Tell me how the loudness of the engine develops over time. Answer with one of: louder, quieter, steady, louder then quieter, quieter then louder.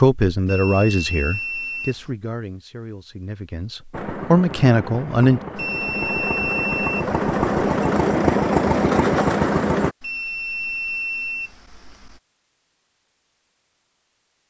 louder.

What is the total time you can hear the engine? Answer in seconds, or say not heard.
6 s.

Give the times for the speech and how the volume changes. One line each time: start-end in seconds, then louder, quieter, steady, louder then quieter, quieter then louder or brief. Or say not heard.
0.0-5.4 quieter then louder.